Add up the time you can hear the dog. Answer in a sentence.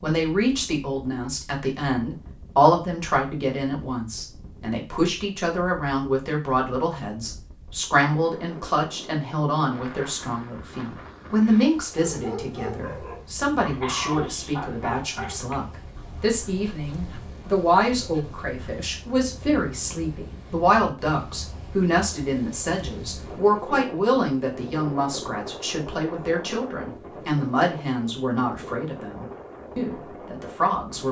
You can hear the dog for 7 seconds altogether.